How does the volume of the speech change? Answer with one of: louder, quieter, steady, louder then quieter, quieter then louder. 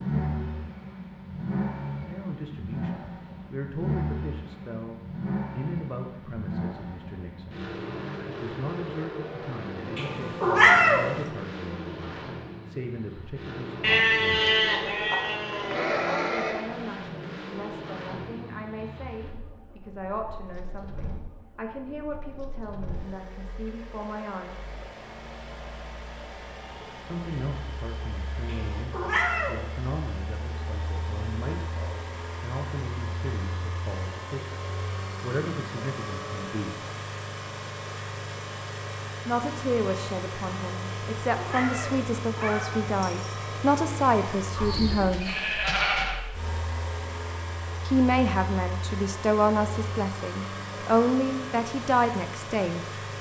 louder.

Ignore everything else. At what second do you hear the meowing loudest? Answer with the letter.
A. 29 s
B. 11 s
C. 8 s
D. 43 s
B.